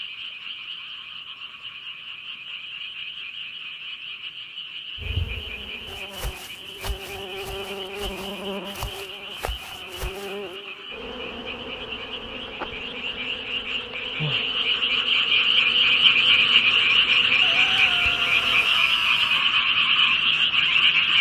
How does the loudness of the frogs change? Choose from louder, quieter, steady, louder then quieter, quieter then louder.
louder.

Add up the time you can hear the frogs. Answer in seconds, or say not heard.
21 s.